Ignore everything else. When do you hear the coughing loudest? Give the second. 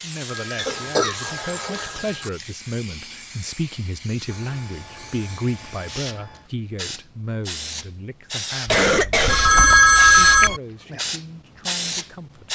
9 s.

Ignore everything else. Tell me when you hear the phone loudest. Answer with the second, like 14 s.
10 s.